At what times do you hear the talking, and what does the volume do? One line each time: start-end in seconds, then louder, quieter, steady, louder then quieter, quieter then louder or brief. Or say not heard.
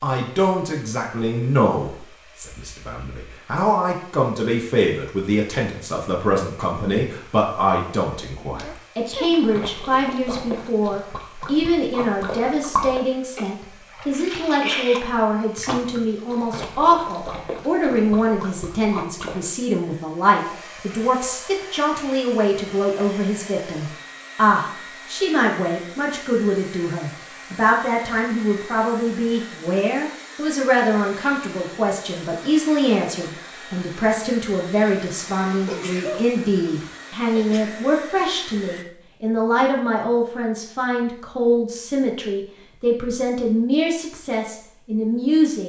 0.0-45.6 steady.